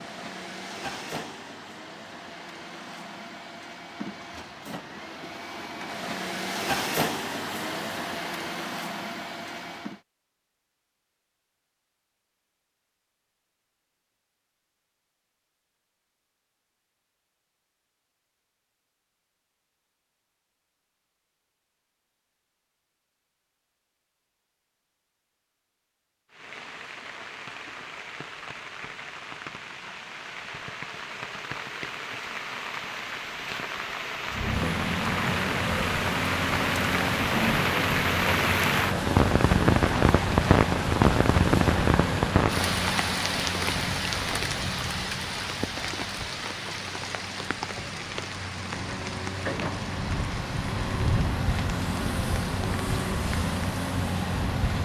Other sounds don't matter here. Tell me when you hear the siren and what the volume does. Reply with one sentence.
The siren can't be heard in this clip.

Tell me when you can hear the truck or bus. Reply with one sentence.
You can hear the truck or bus from 0.0 to 10.0 s and from 34.3 to 54.8 s.